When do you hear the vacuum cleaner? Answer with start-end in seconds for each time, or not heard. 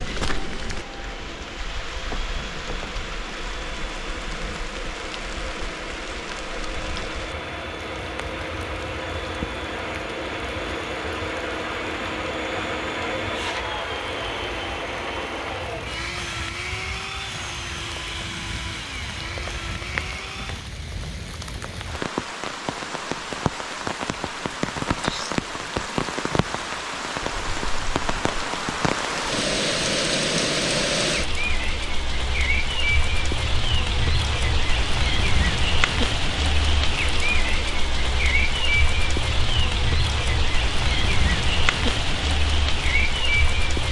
0.0-20.7.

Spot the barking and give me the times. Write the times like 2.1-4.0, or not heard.
not heard.